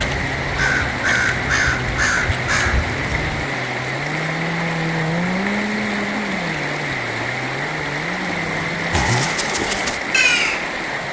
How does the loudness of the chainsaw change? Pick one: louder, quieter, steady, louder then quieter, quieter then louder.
louder then quieter.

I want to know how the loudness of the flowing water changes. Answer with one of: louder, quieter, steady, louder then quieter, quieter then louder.
steady.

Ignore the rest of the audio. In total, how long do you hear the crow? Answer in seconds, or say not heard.
5 s.